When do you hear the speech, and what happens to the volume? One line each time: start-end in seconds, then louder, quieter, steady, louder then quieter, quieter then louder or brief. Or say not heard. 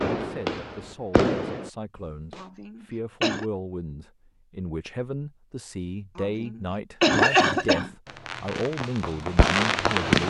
0.1-10.2 louder.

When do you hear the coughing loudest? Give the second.
7 s.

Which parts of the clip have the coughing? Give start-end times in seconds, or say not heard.
2.4-3.5, 6.2-7.9.